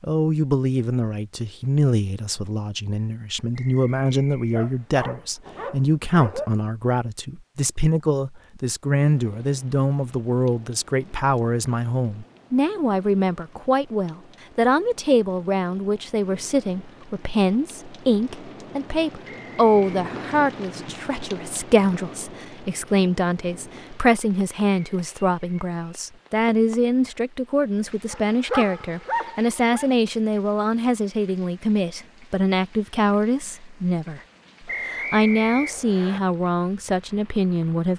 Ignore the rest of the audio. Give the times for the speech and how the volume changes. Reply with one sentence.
You can hear the speech from 0.0 to 37.9 s, at a steady volume.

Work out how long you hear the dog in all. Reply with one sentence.
You can hear the dog for 4 seconds altogether.